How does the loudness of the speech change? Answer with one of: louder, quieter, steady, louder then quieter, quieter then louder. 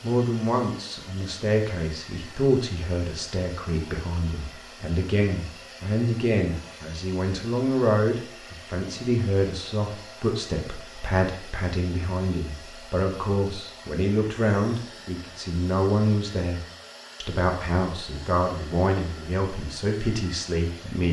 steady.